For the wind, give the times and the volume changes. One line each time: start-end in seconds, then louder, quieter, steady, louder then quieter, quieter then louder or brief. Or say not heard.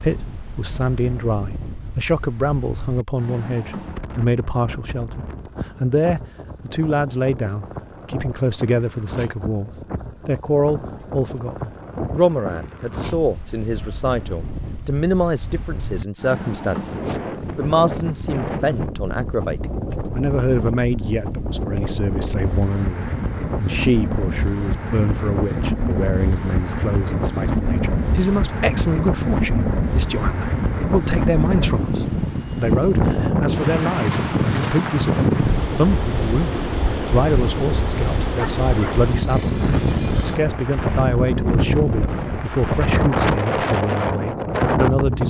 0.0-45.2 louder.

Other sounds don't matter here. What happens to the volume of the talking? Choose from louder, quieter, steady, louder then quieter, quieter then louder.
steady.